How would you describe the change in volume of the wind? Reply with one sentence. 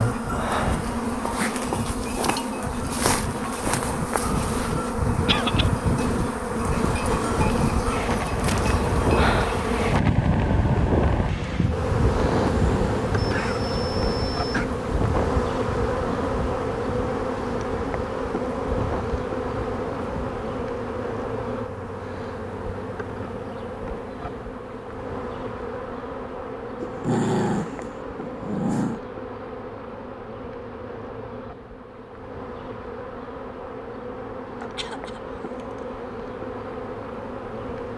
The loudness of the wind goes up, then down.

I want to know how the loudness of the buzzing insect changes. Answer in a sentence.
The loudness of the buzzing insect goes down.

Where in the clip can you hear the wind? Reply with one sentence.
The wind can be heard from 0.1 to 20.5 s.